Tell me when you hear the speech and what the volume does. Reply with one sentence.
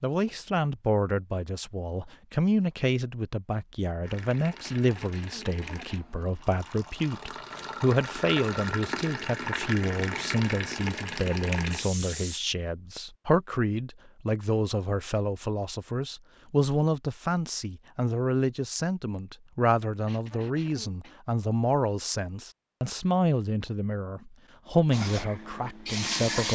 The speech can be heard from 0.0 to 26.5 s, at a steady volume.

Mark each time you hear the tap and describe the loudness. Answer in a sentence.
The tap can be heard from 4.0 to 12.4 s, getting louder; and briefly from 24.9 to 26.5 s.